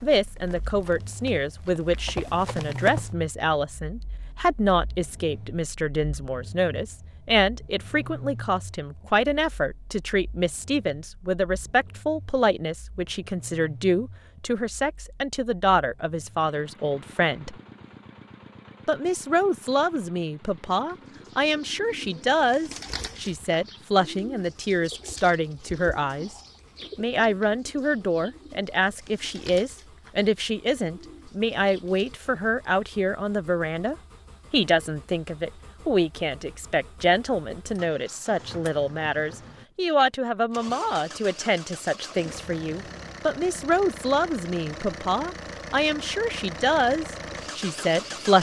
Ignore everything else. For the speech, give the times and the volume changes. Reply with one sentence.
The speech can be heard from 0.0 to 17.6 s, at a steady volume; from 18.9 to 26.3 s, at a steady volume; and from 26.9 to 48.3 s, at a steady volume.